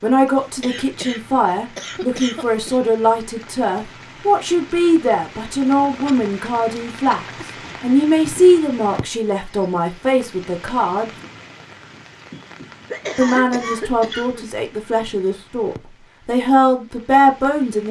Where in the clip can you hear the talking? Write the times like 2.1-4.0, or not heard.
0.0-7.2, 7.8-11.1, 13.2-17.8.